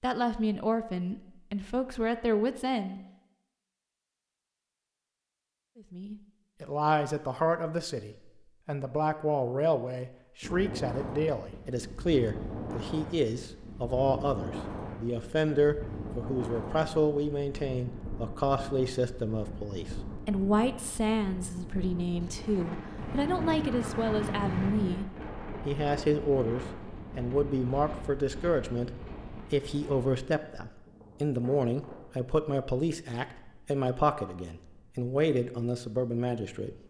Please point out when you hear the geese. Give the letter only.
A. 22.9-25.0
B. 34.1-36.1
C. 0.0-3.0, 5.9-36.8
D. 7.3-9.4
A.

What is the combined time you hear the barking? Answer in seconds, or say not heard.
not heard.